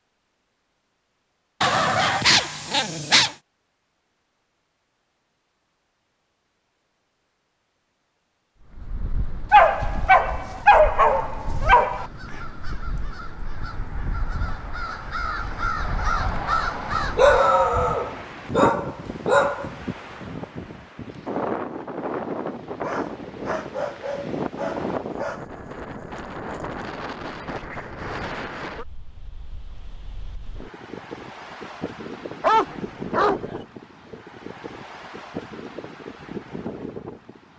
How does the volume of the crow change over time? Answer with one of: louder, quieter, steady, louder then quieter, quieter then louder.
louder.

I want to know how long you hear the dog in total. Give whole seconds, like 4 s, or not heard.
11 s.